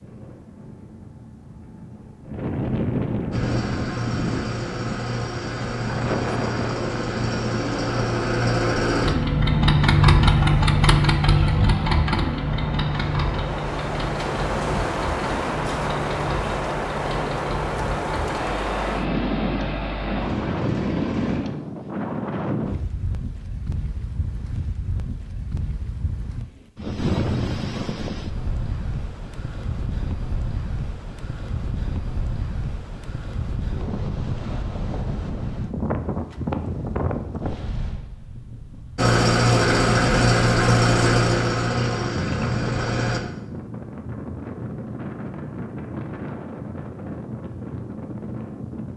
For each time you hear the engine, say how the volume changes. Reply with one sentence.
The engine can be heard from 3.3 to 21.4 s, getting louder then quieter; and from 39.0 to 43.2 s, getting quieter.